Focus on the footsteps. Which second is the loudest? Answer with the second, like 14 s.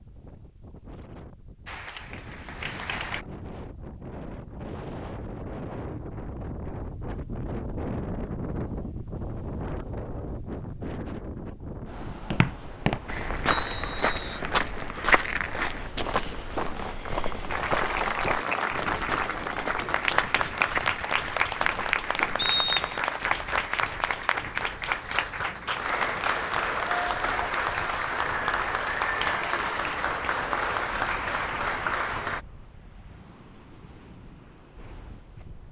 15 s.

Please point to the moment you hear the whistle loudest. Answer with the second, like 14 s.
23 s.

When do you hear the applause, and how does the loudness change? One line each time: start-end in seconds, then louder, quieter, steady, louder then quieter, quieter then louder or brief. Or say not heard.
1.6-3.2 brief
17.4-32.4 steady.